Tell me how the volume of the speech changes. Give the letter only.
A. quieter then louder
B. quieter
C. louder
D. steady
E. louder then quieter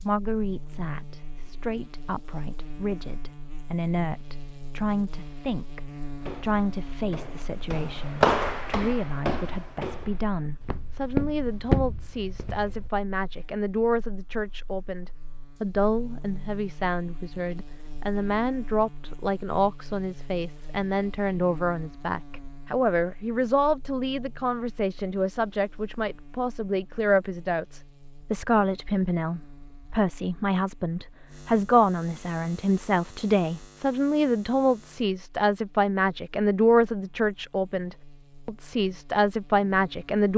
C.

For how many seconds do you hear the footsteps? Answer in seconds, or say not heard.
7 s.